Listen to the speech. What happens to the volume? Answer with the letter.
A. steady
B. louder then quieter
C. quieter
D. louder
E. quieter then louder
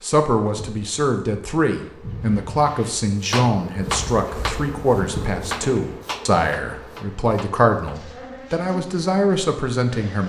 A.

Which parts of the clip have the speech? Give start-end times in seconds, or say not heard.
0.0-10.2.